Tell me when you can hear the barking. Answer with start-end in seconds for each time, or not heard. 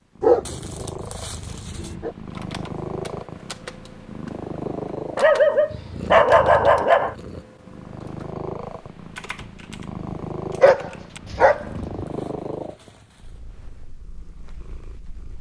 0.2-2.1, 5.2-7.2, 10.6-12.1.